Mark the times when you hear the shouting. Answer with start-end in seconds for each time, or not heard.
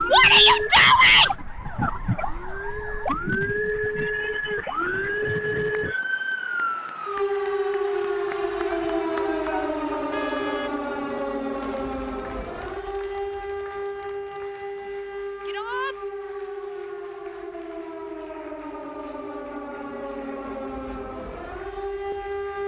0.1-1.3, 8.7-9.8, 15.4-15.9.